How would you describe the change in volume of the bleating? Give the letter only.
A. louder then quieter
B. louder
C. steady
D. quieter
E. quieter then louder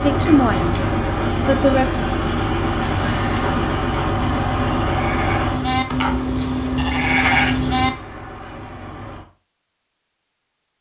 B.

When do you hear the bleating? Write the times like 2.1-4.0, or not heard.
0.3-7.9.